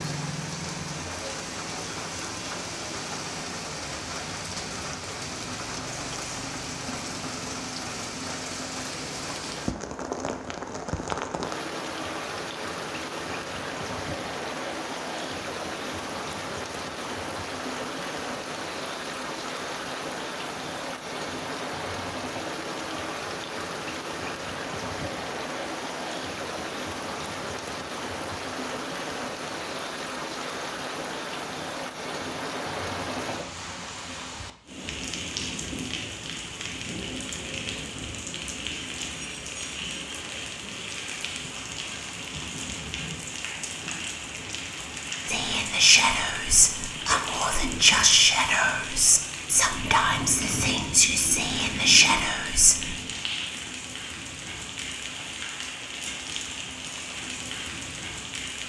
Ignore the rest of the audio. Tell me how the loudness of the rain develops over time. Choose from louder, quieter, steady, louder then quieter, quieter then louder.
steady.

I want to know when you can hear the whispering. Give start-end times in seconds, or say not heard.
45.2-53.0.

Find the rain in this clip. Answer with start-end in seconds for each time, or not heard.
0.0-58.6.